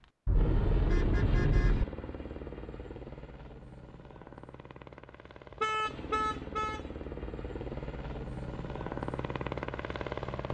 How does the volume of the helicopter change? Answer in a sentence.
The volume of the helicopter goes down, then up.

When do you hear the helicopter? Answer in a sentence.
You can hear the helicopter from 0.0 to 10.4 s.